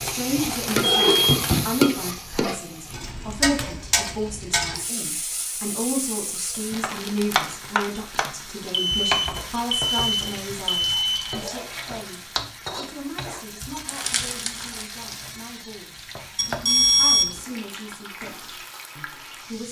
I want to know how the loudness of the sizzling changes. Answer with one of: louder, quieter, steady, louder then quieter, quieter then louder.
quieter.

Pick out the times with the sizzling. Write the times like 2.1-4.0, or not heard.
0.0-19.6.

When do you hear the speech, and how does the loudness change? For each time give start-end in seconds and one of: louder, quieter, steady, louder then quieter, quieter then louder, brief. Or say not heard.
0.0-19.6 quieter.